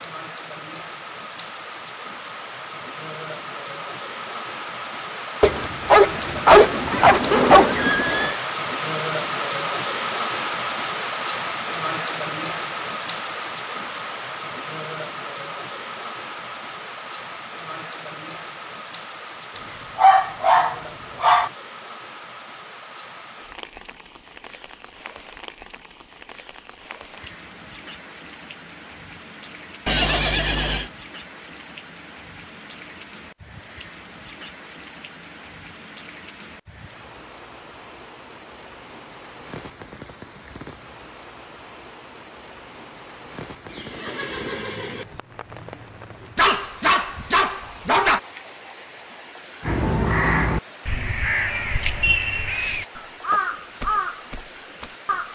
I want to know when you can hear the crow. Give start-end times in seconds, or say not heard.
49.6-55.3.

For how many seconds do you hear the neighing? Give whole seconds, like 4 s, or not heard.
4 s.